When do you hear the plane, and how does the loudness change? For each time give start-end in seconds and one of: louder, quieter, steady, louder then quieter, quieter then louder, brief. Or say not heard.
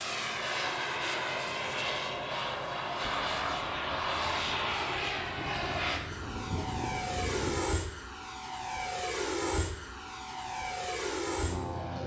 0.0-12.0 steady.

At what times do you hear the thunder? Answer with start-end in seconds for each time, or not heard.
3.0-7.7.